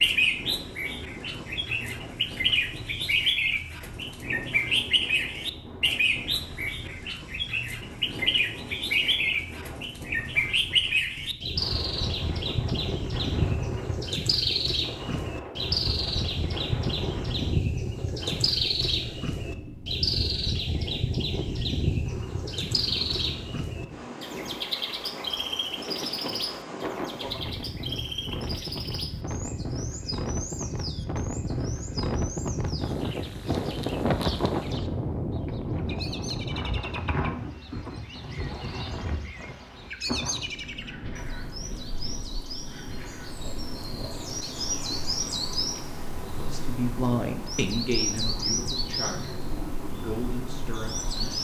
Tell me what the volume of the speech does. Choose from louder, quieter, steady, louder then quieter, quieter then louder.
quieter then louder.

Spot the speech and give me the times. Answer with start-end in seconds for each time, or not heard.
46.2-51.3.